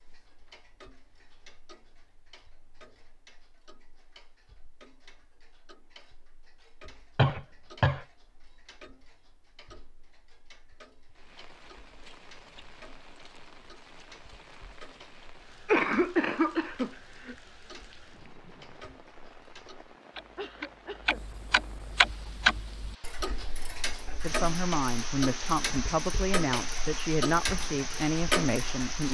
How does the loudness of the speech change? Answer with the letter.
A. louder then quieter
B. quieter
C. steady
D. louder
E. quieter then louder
C.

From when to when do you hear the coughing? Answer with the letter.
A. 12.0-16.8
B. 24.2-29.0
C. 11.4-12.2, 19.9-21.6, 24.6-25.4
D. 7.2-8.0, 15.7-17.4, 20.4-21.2
D.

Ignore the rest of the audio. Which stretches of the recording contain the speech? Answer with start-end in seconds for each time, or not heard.
24.2-29.0.